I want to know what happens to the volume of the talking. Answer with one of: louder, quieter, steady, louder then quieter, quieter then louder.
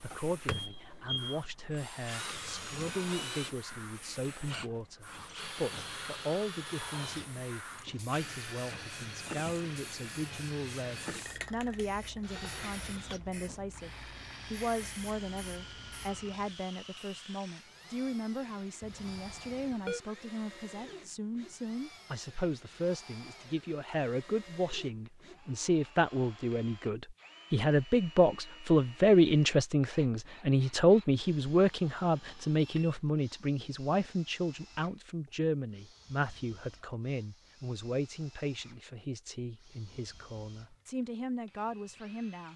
louder then quieter.